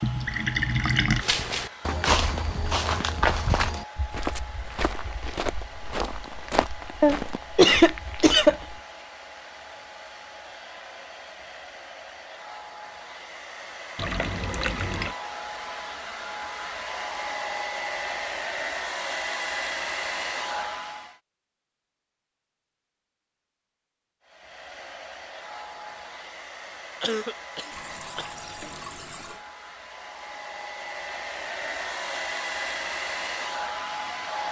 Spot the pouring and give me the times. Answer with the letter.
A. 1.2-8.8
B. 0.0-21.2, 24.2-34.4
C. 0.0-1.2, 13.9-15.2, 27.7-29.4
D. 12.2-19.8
C.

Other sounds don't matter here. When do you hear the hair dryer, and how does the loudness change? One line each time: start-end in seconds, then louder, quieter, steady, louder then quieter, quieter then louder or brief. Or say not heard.
0.0-21.2 louder
24.2-34.4 louder.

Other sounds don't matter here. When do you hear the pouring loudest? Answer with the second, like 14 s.
1 s.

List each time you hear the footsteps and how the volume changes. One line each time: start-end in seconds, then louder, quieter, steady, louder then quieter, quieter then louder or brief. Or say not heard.
1.2-8.8 quieter.